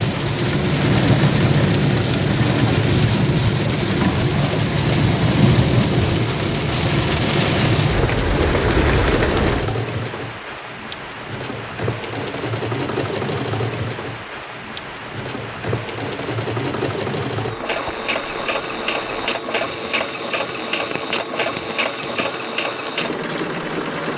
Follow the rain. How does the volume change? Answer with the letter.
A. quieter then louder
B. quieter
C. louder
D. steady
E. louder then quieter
B.